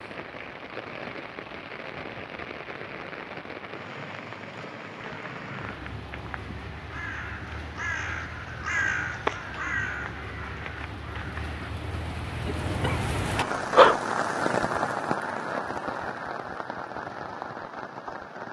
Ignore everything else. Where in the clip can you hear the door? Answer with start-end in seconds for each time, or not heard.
not heard.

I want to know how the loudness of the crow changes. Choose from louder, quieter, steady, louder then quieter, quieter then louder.
louder then quieter.